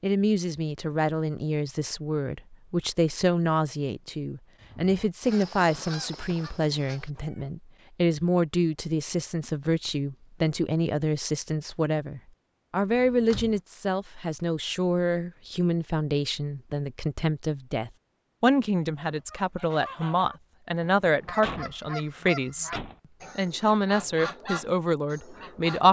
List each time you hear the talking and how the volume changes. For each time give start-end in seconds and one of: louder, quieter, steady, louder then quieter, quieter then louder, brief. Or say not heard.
0.0-22.7 steady
23.4-25.8 brief.